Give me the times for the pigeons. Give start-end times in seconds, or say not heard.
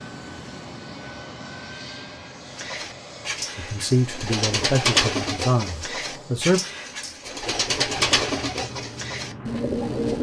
2.5-10.1.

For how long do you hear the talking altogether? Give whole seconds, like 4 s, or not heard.
3 s.